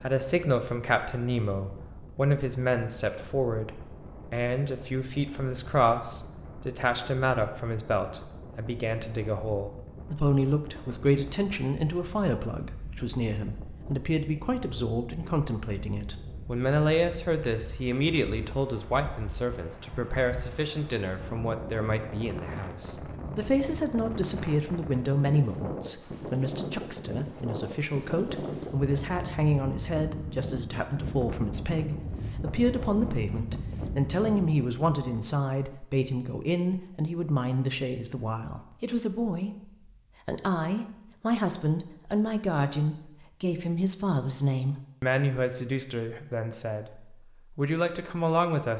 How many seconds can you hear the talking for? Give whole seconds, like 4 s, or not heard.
48 s.